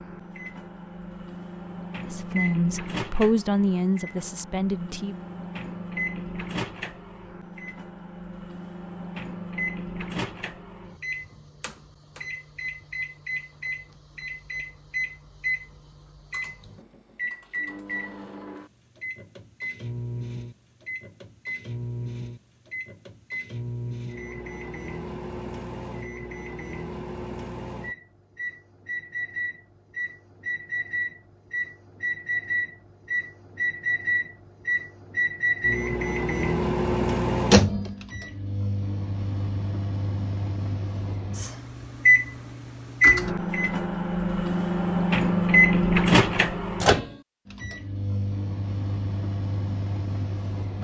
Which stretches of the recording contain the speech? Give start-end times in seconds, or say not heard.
2.0-5.2.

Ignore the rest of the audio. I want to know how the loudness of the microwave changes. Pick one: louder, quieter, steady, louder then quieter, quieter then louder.
louder.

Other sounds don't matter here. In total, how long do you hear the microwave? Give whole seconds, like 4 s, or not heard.
51 s.